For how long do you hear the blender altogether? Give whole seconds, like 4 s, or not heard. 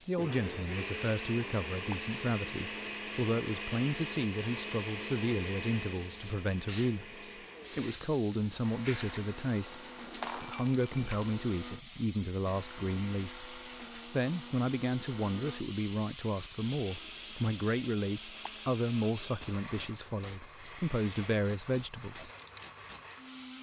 23 s.